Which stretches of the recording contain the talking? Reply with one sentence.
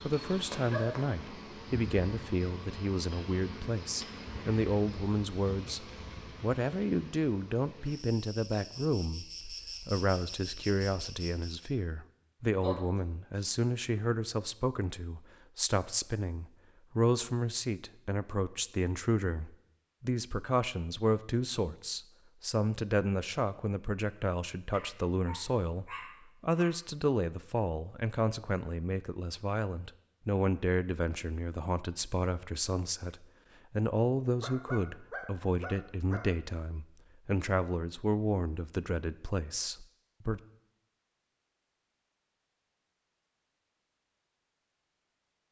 You can hear the talking from 0.0 to 40.4 s.